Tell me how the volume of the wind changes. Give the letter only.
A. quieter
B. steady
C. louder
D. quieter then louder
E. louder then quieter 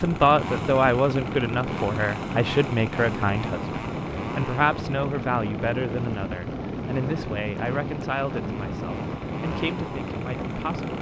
B.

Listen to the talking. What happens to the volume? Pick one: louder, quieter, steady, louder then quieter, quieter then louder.
quieter.